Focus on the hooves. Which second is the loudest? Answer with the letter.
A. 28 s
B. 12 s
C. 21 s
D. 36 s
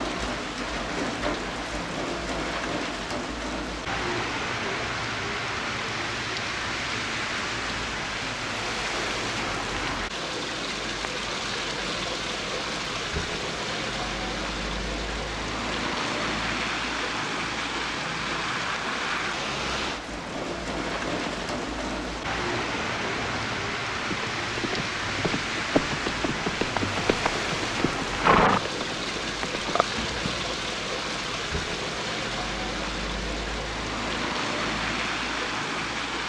A.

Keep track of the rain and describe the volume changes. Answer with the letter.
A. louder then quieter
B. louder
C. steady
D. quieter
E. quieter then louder
C.